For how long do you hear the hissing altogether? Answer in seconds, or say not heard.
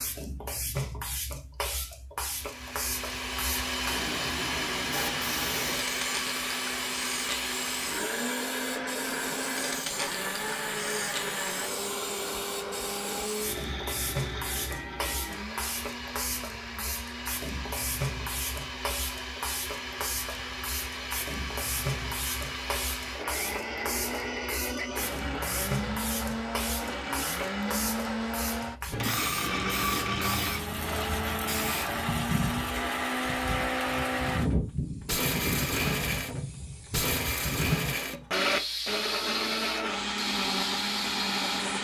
42 s.